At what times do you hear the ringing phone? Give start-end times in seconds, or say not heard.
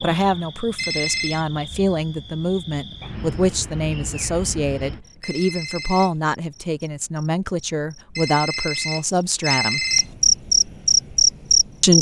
0.8-1.4, 5.2-6.2, 8.2-10.1.